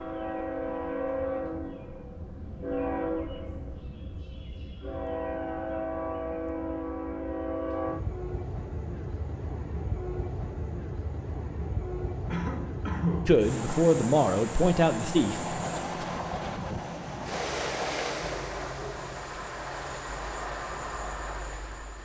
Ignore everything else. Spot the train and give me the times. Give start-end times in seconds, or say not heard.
0.0-22.0.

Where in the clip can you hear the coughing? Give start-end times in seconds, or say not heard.
12.3-13.9.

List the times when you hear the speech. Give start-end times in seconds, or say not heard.
13.2-16.1.